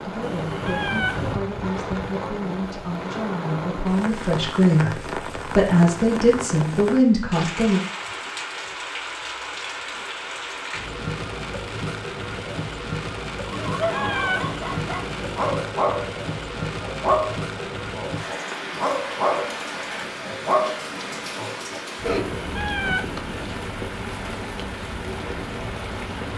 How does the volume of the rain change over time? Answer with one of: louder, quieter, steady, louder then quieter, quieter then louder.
steady.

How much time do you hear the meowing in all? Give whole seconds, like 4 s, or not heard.
5 s.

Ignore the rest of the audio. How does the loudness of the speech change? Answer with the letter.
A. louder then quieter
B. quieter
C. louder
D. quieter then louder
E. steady
C.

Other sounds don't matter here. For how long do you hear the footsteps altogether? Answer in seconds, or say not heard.
not heard.